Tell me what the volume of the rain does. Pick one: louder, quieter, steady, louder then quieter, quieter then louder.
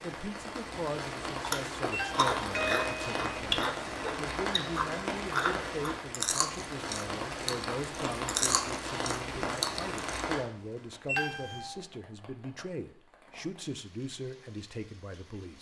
quieter.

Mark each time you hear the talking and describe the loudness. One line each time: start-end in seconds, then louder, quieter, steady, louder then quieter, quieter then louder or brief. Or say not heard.
0.0-15.5 steady.